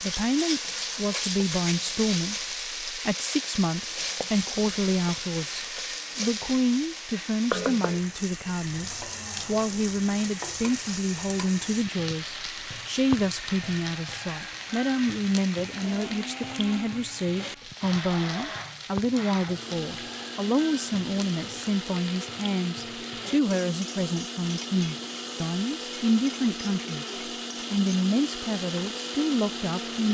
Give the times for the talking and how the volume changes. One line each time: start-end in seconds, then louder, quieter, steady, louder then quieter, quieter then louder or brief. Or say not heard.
0.0-27.1 steady
27.7-30.0 brief.